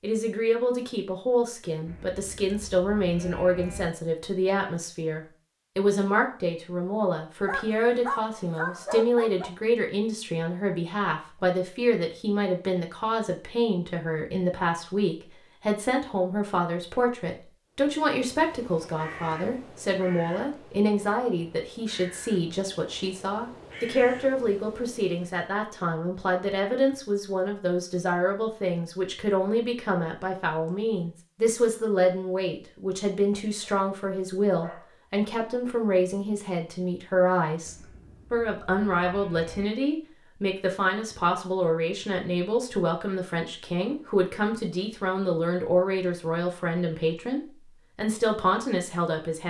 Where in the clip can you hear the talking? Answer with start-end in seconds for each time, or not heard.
0.0-49.4.